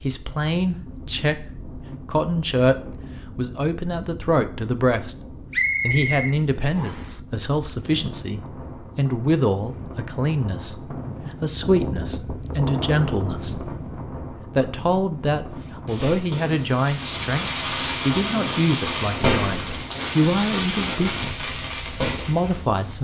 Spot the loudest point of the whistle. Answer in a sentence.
The loudest moment of the whistle is at 6 seconds.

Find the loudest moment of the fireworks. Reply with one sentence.
The loudest moment of the fireworks is at 19 seconds.